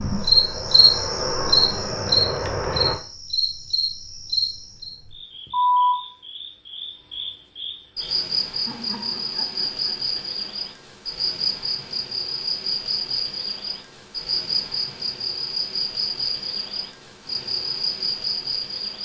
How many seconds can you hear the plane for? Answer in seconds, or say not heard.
3 s.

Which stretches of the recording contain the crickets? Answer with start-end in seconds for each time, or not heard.
0.0-19.0.